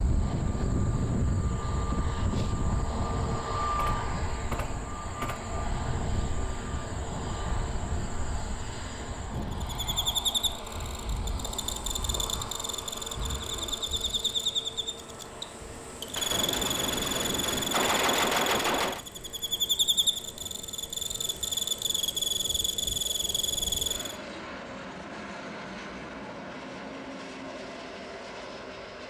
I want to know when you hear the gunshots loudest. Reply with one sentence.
The loudest moment of the gunshots is at 18 seconds.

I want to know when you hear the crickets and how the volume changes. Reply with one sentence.
The crickets can be heard from 0.0 to 24.1 s, getting louder.